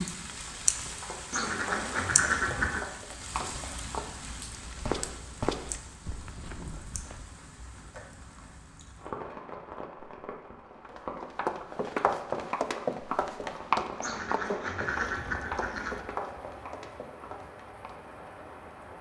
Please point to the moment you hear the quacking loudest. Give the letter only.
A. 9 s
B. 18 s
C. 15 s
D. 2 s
D.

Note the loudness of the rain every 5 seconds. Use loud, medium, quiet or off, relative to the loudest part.
loud, medium, medium, medium.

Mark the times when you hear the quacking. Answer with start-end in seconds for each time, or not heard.
1.3-2.9, 14.0-16.1.